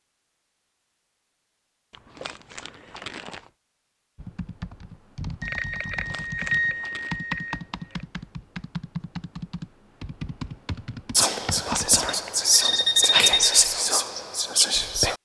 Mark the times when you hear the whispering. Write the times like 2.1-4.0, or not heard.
11.1-15.2.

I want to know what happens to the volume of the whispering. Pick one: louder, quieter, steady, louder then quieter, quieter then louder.
steady.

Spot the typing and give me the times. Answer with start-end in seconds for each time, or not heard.
4.2-12.0.